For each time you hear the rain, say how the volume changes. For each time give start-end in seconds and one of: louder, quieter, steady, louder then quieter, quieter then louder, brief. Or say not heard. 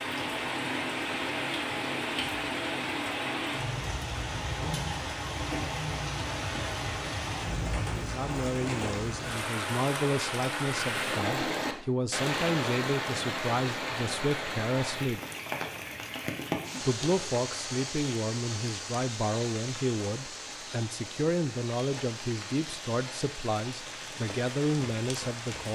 0.0-25.6 quieter.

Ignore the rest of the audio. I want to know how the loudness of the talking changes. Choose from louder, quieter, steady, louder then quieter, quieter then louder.
steady.